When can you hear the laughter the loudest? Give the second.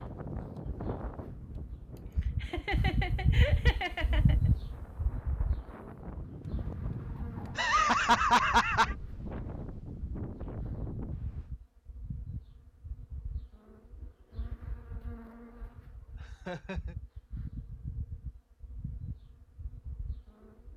8 s.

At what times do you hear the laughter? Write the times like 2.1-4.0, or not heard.
2.2-4.5, 7.5-8.9, 16.2-16.9.